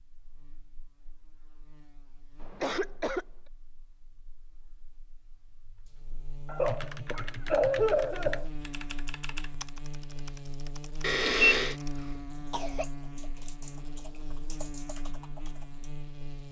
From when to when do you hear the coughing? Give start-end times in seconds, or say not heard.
2.4-3.2, 6.5-8.4, 12.0-12.8.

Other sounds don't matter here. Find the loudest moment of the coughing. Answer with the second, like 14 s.
8 s.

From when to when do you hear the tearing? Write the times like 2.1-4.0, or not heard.
not heard.